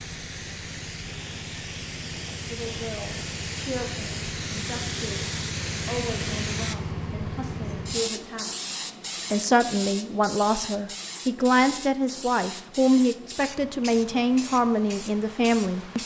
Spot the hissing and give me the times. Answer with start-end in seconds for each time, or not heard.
0.0-16.0.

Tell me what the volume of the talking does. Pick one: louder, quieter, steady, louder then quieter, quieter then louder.
louder.